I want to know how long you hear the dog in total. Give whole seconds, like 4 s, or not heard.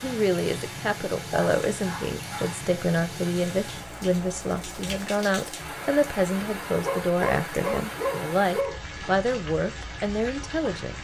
3 s.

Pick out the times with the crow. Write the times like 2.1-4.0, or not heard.
not heard.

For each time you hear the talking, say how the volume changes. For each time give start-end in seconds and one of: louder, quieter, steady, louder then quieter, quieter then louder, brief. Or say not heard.
0.0-10.9 steady.